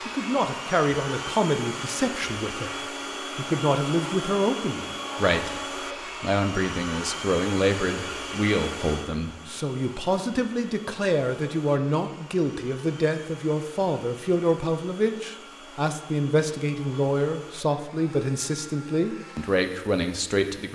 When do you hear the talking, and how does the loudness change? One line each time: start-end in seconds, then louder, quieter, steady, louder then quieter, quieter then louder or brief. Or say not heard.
0.0-20.7 steady.